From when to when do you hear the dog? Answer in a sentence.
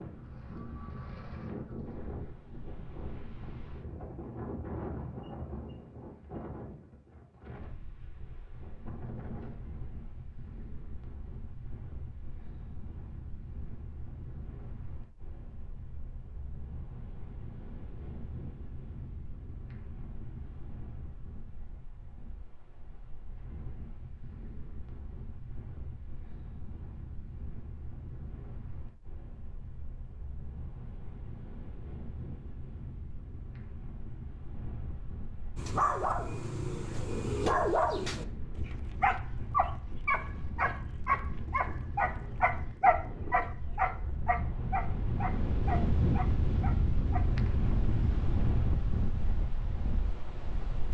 The dog can be heard from 35.5 to 47.4 s.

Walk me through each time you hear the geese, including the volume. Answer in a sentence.
You can't hear the geese here.